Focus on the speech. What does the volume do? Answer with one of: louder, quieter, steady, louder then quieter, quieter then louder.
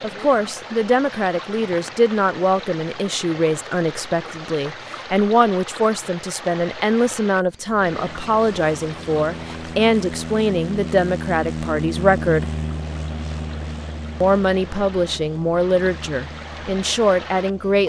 steady.